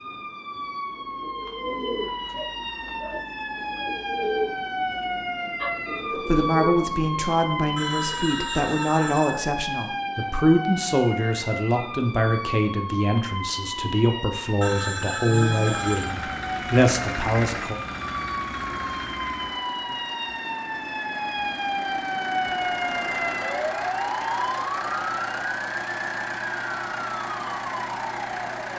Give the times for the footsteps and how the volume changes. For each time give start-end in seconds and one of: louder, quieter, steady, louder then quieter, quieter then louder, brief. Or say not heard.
not heard.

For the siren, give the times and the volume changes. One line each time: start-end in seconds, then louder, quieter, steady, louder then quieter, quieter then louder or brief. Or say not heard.
0.0-28.7 steady.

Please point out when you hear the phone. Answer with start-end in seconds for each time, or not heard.
7.8-9.4, 14.6-16.1.